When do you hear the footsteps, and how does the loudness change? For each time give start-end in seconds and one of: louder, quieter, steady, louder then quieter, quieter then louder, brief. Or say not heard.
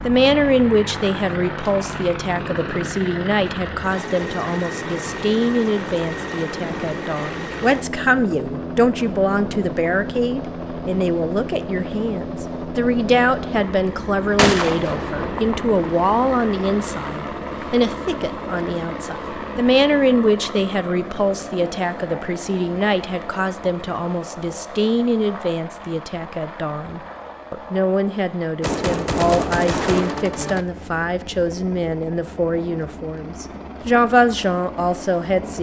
not heard.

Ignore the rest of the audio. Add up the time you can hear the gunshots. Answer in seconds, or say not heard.
3 s.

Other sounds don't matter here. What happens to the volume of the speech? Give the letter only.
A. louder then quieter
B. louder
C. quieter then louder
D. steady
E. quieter
D.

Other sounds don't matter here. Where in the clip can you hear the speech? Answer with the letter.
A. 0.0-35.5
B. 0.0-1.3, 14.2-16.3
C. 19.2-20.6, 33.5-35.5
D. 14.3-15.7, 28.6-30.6
A.